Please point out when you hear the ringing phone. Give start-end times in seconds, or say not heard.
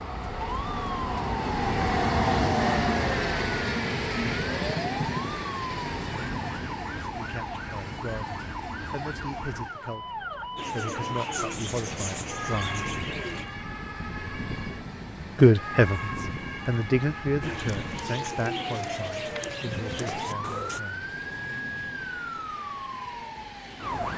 not heard.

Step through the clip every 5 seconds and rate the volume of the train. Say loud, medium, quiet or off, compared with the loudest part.
loud, medium, quiet, quiet, quiet.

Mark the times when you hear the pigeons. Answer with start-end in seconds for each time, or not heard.
10.6-13.4, 17.4-20.8.